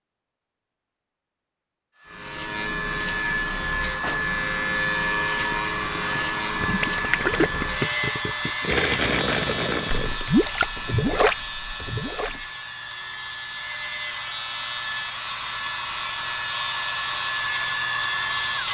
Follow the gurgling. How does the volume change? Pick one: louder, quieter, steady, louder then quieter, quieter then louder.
louder.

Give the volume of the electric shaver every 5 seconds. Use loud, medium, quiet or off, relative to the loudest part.
loud, loud, medium, loud.